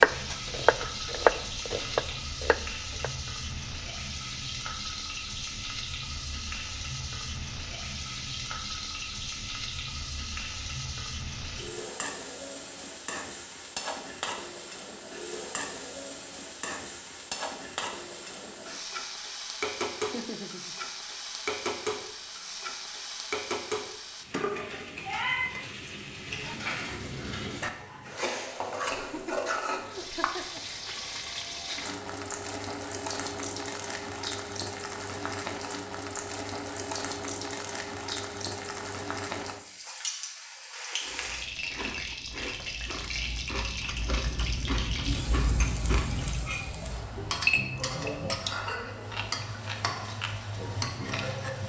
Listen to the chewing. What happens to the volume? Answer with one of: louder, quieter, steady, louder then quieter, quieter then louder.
louder then quieter.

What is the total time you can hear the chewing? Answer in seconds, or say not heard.
10 s.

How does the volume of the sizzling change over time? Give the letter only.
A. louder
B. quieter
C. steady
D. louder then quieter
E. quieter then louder
C.